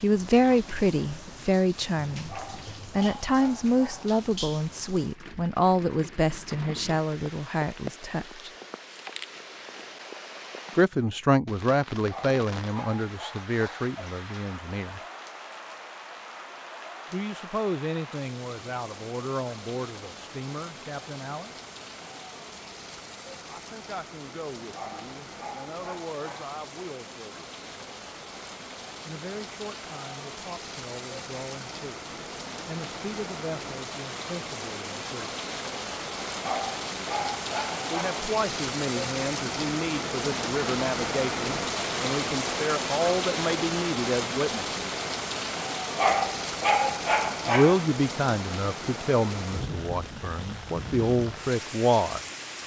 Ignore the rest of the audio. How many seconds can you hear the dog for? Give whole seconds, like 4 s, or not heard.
9 s.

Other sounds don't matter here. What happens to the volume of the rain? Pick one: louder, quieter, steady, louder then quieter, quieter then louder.
louder.